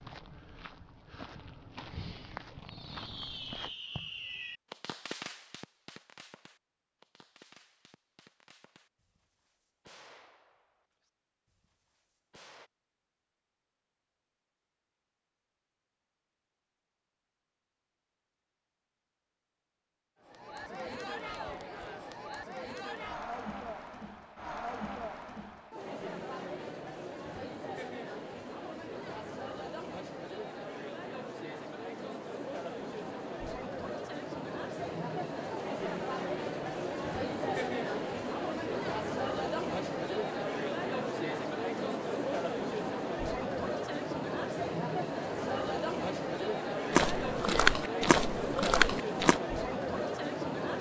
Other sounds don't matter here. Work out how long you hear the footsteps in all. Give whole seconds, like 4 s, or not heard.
6 s.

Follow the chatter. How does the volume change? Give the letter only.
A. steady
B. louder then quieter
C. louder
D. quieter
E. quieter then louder
C.